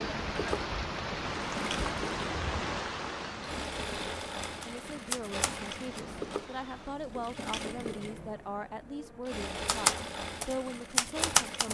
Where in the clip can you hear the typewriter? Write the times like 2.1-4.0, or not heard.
4.4-6.0, 9.7-11.6.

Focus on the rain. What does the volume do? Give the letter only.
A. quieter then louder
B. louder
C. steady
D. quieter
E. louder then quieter
D.